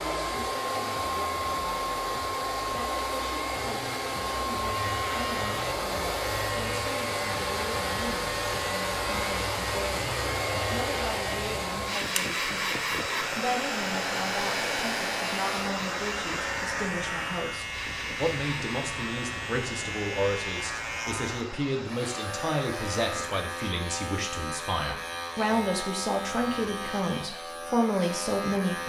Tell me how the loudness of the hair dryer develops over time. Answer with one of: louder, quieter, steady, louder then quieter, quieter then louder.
quieter.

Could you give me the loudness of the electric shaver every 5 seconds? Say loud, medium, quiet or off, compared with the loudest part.
medium, loud, loud, loud, loud, loud.